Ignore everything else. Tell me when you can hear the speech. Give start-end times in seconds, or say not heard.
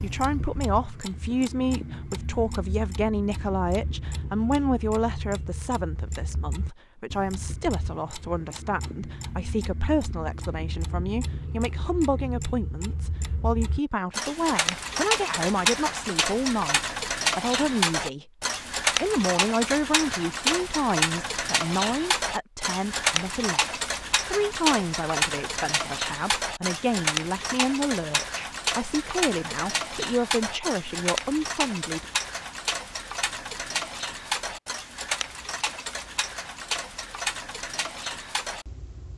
0.0-18.3, 19.0-32.0.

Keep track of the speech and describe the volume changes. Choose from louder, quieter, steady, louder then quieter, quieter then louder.
steady.